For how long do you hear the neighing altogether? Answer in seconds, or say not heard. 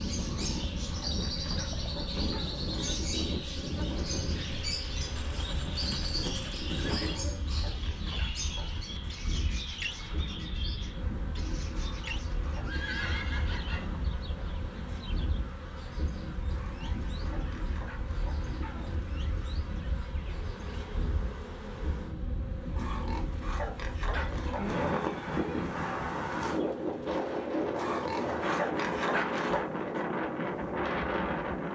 5 s.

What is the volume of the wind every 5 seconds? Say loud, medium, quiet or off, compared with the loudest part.
medium, medium, medium, medium, medium, loud, loud.